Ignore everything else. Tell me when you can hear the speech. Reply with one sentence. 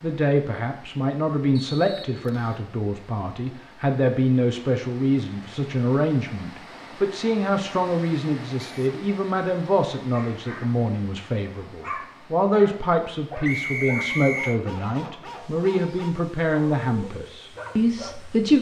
You can hear the speech from 0.0 to 18.5 s.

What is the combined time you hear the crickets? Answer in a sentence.
You can't hear the crickets here.